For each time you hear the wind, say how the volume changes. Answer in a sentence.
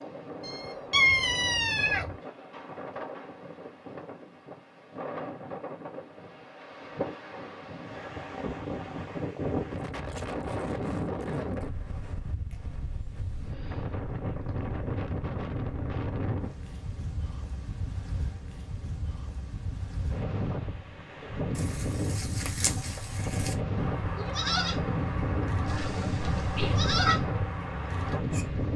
The wind can be heard from 0.0 to 28.7 s, getting louder.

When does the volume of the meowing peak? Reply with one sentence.
The loudest moment of the meowing is at 1 second.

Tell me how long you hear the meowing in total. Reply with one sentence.
You can hear the meowing for 3 seconds altogether.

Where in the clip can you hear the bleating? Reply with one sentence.
The bleating can be heard from 21.2 to 28.4 s.